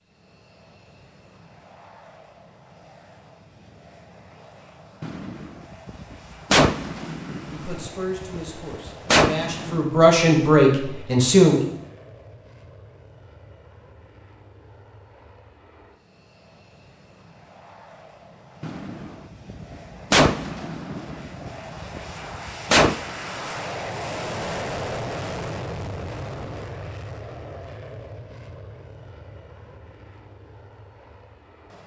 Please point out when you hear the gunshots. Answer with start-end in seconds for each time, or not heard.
5.0-9.8, 18.6-23.0.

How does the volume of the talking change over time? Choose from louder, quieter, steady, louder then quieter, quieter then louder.
quieter then louder.